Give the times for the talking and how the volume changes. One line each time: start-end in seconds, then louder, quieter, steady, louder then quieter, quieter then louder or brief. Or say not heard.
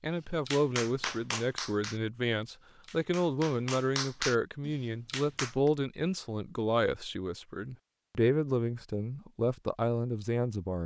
0.0-10.8 steady.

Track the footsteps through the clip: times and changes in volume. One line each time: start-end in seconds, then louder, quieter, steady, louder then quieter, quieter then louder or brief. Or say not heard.
not heard.